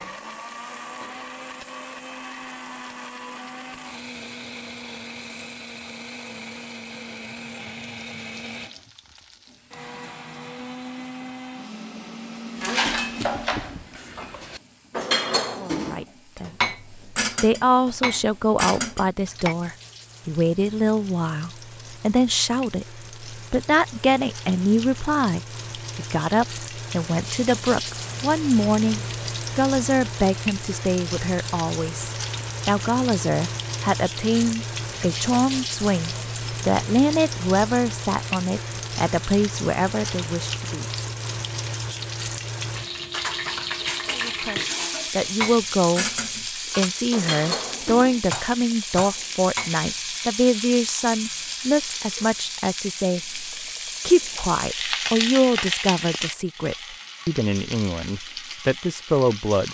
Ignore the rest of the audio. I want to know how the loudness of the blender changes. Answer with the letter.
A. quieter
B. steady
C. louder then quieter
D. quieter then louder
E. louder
B.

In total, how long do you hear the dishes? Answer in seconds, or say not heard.
14 s.